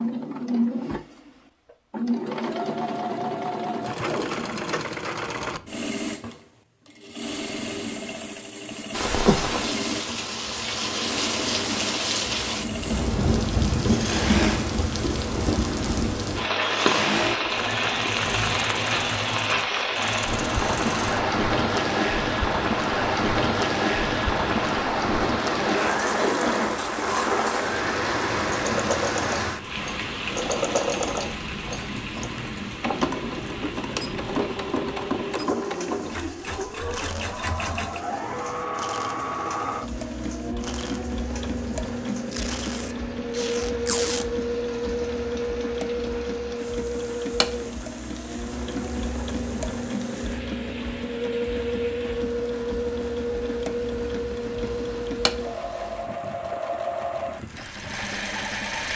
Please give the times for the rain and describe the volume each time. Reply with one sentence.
The rain can be heard from 8.9 to 58.9 s, getting quieter.